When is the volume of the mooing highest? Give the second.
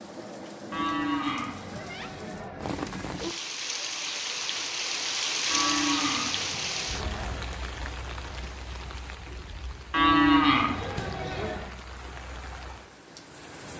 10 s.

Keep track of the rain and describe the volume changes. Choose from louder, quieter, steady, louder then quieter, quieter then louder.
louder then quieter.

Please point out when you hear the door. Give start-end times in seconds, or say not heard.
not heard.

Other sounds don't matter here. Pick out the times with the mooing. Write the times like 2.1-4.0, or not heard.
0.7-2.6, 5.5-7.5, 9.9-11.7.